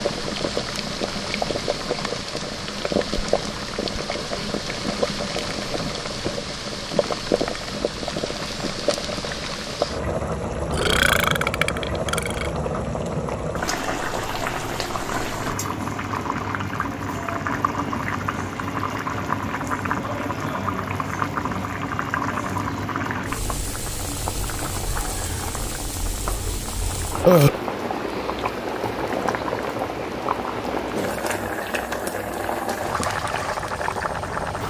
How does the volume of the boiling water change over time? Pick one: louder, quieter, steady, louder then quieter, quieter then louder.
steady.